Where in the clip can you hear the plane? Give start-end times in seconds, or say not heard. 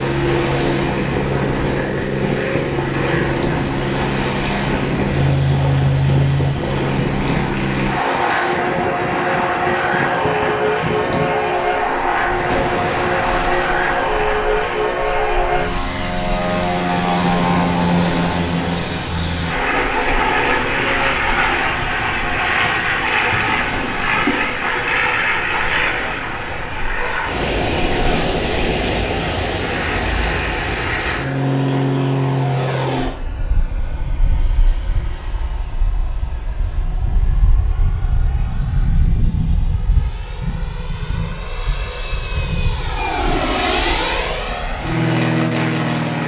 0.0-46.2.